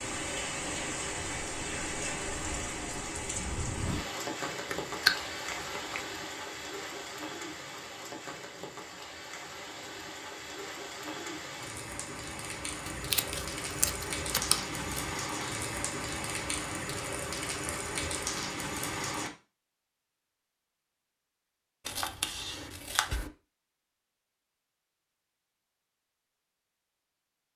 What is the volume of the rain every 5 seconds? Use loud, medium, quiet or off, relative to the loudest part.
loud, medium, loud, loud, off, off.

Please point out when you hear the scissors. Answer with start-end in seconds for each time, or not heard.
4.7-6.0, 12.9-15.2, 21.9-23.3.